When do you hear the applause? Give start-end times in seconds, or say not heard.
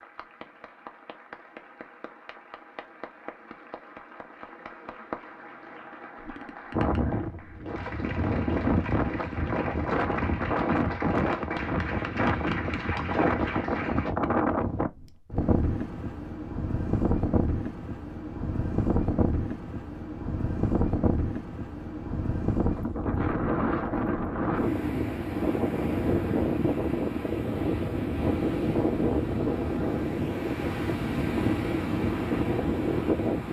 0.0-14.1.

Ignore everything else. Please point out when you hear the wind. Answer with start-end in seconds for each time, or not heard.
6.7-33.4.